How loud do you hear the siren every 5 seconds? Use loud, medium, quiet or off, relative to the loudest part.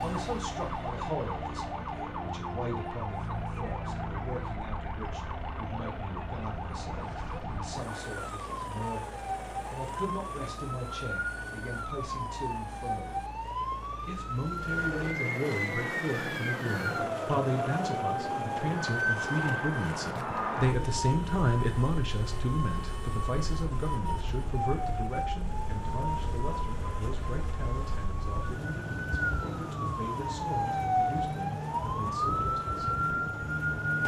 medium, medium, medium, loud, medium, medium, loud.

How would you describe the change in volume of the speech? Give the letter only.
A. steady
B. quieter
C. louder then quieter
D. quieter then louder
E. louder
C.